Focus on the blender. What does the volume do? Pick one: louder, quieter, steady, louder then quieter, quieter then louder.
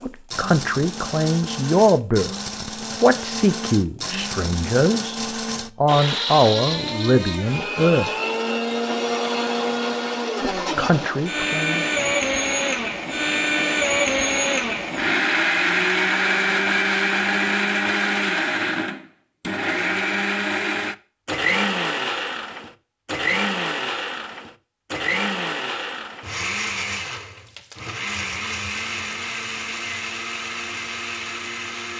louder then quieter.